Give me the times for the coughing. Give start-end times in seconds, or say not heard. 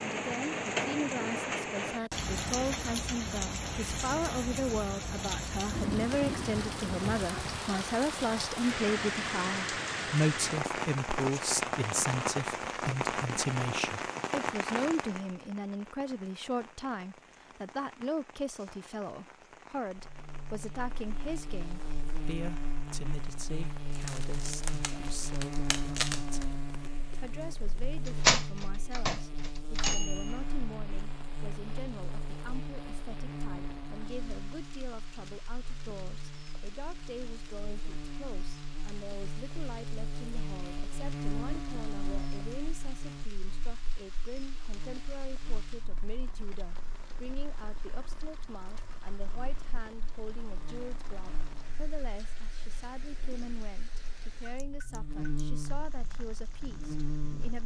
not heard.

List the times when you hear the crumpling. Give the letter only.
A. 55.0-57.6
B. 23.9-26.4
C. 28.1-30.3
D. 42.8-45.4
B.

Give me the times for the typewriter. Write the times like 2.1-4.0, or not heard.
28.1-30.3.